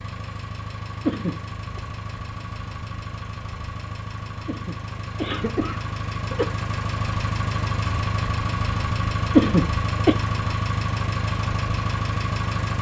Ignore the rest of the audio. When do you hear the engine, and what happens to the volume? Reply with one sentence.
You can hear the engine from 0.0 to 12.7 s, getting louder.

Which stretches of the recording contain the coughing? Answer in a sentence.
The coughing can be heard from 1.1 to 1.8 s, from 4.5 to 6.5 s and from 9.3 to 10.2 s.